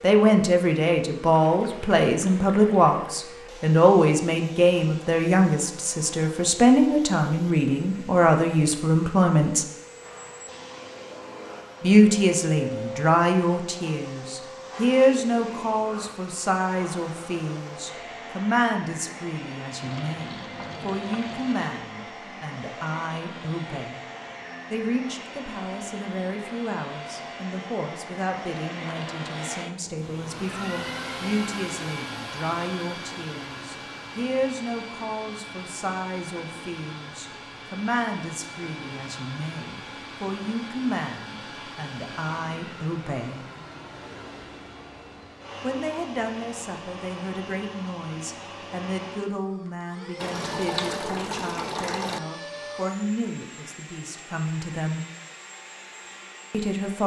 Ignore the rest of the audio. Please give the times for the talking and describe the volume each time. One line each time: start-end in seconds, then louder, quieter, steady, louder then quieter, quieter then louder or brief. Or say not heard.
0.0-9.7 steady
11.8-24.1 quieter
24.7-43.5 steady
45.6-55.0 steady
56.5-57.0 brief.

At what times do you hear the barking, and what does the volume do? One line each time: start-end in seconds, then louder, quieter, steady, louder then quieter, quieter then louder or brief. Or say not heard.
not heard.